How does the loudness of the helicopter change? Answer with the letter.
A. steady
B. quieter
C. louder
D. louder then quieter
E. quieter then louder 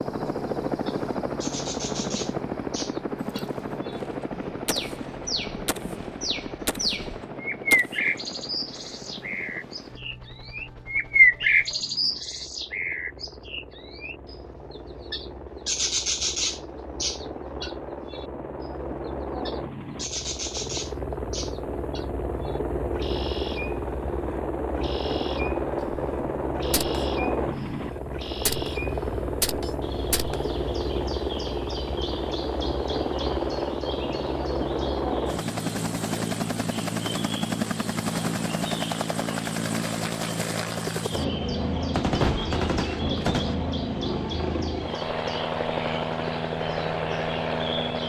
E.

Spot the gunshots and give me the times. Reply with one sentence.
The gunshots can be heard from 3.9 to 8.2 s, from 25.8 to 30.6 s and from 42.0 to 43.5 s.